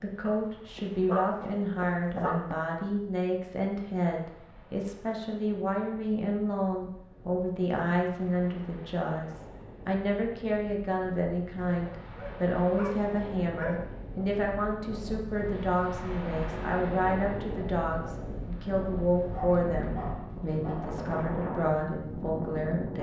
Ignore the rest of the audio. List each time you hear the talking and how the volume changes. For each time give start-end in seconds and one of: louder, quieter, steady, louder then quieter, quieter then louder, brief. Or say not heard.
0.0-22.9 steady.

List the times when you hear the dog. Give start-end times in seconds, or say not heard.
0.2-2.8, 11.8-13.8, 19.3-21.0.